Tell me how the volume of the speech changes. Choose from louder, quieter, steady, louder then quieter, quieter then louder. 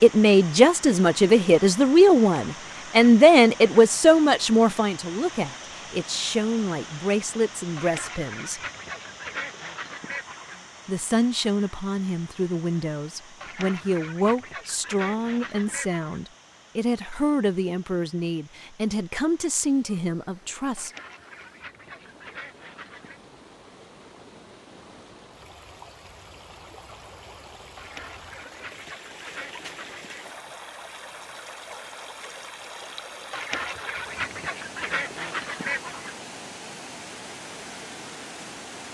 quieter.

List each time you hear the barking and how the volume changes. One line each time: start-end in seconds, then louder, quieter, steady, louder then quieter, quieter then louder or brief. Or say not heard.
not heard.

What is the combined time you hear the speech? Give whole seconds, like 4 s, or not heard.
19 s.